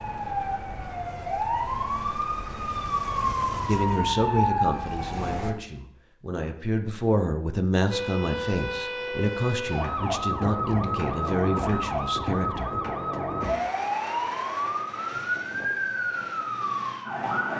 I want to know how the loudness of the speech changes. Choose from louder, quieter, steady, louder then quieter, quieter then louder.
steady.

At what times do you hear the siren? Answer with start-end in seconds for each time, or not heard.
0.0-5.5, 7.9-17.5.